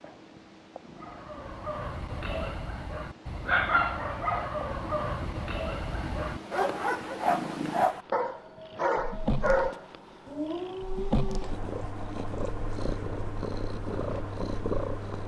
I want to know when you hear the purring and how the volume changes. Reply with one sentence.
The purring can be heard from 0.0 to 15.2 s, getting louder.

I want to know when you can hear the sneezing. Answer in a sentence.
The sneezing can't be heard in this clip.